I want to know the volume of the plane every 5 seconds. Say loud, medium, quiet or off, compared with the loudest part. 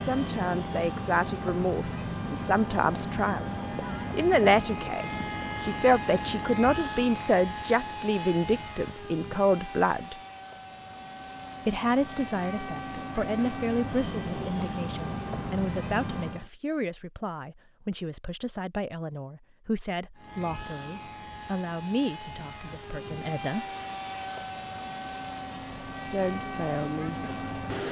loud, loud, loud, loud, medium, loud.